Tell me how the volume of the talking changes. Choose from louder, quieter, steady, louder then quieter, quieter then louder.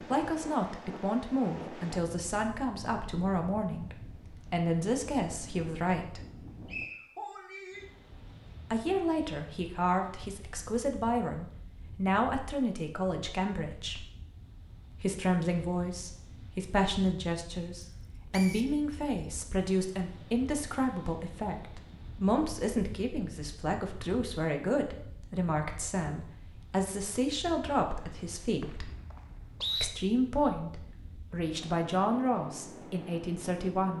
steady.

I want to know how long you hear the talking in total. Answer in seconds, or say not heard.
30 s.